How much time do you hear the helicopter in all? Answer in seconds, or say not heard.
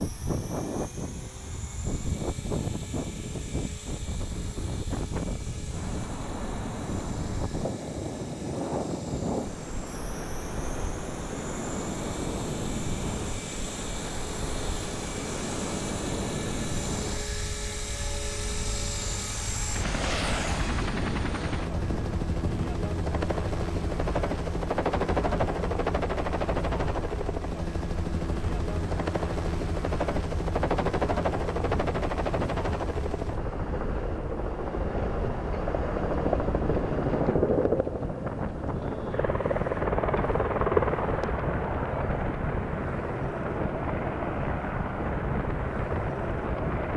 47 s.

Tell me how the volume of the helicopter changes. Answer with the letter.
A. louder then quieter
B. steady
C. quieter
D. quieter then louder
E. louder
E.